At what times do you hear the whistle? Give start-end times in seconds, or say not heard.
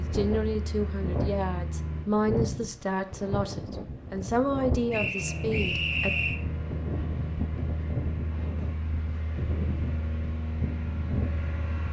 4.9-6.4.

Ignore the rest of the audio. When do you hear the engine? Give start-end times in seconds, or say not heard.
0.0-2.1, 5.2-11.8.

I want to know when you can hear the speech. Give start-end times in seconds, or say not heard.
0.0-6.2.